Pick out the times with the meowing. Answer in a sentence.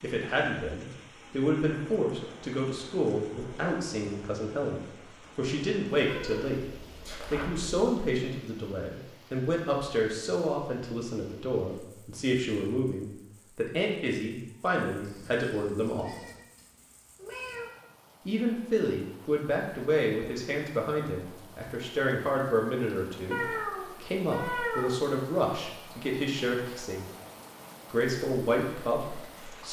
You can hear the meowing from 6.0 to 7.8 s, from 15.0 to 17.7 s and from 23.3 to 25.0 s.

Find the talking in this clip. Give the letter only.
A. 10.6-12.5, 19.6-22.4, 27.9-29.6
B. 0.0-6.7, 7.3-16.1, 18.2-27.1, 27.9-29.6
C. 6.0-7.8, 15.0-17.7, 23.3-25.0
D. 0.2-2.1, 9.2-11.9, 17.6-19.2
B.